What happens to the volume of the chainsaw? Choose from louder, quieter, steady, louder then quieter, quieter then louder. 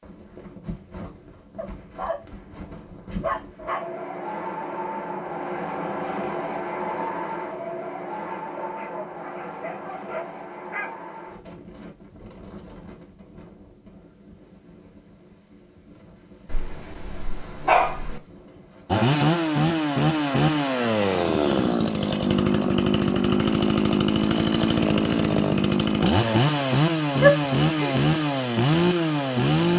steady.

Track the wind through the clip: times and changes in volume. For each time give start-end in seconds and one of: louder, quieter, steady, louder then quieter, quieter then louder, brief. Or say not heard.
0.0-19.1 louder then quieter.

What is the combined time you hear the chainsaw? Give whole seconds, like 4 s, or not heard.
11 s.